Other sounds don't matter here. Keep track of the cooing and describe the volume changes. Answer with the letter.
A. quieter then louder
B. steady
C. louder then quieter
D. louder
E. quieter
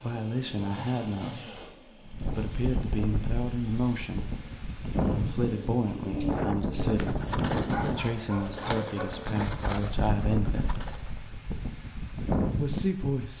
E.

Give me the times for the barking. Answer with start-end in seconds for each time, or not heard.
7.7-9.2.